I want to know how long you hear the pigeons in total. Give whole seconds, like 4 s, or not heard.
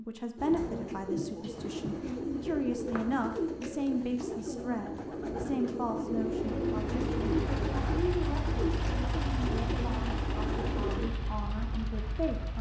11 s.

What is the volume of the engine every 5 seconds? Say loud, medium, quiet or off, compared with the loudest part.
off, loud, loud.